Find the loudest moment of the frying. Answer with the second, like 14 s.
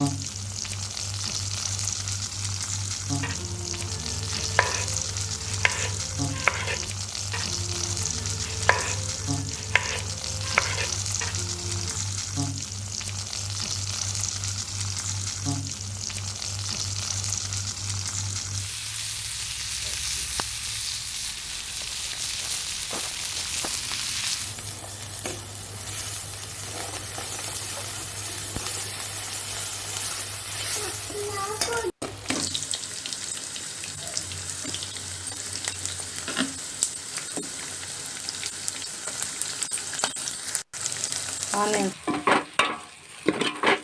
42 s.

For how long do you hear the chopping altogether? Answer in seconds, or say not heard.
9 s.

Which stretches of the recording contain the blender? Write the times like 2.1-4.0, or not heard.
not heard.